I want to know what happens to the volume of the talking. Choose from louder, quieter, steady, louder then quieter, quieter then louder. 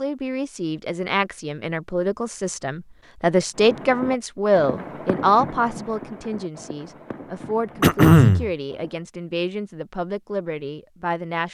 louder then quieter.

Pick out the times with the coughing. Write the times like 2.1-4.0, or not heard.
7.8-8.5.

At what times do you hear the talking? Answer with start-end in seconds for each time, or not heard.
0.0-11.4.